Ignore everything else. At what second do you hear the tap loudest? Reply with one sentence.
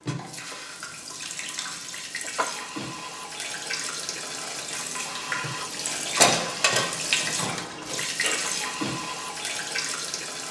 The volume of the tap peaks at 7 seconds.